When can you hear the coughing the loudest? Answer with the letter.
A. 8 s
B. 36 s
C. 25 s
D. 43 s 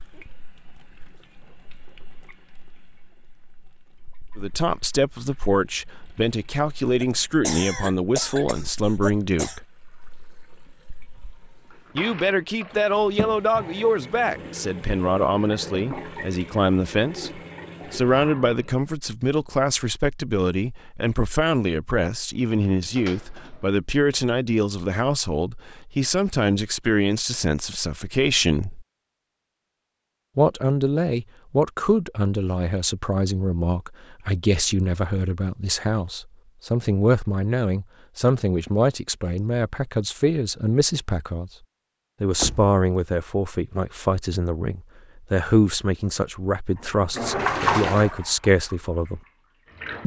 A.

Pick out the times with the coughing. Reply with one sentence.
You can hear the coughing from 7.0 to 9.6 s.